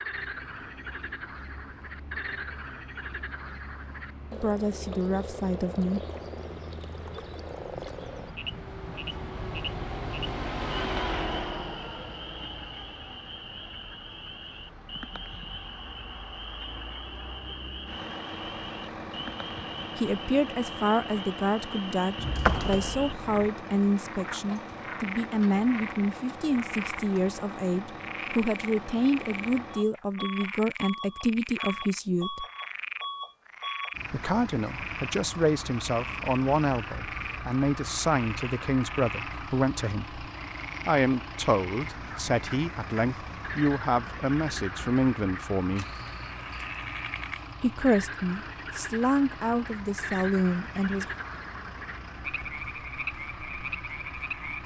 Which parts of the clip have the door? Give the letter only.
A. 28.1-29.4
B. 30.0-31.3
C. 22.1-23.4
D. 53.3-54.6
C.